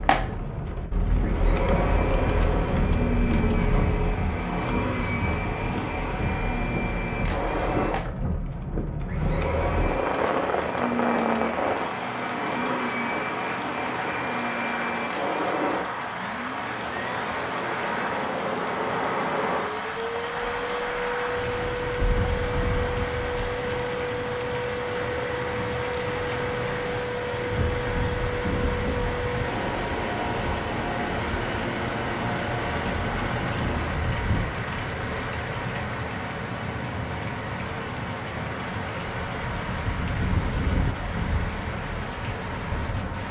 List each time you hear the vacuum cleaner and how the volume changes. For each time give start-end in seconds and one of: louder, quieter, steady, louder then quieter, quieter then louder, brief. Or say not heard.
0.0-34.1 steady.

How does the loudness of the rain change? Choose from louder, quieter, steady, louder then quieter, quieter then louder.
steady.